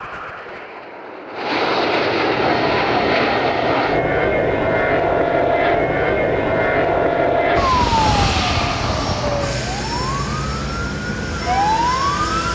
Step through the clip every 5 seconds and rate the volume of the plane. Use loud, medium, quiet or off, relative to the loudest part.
loud, loud, medium.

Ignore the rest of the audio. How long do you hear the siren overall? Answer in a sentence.
You can hear the siren for 10 seconds altogether.